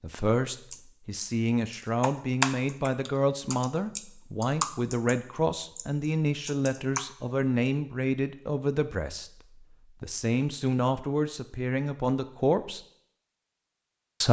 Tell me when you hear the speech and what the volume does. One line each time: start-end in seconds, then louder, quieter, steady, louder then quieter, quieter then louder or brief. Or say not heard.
0.0-9.4 steady
10.0-12.8 brief.